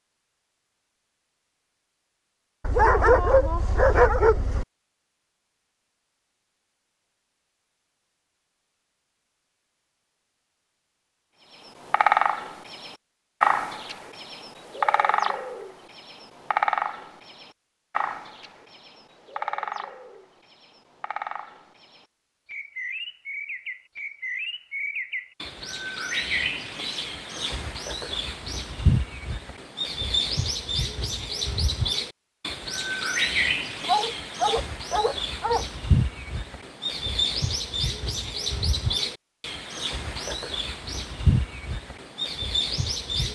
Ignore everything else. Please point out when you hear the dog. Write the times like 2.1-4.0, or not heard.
2.6-4.7, 33.9-35.6.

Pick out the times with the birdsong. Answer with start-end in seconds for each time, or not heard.
11.7-43.3.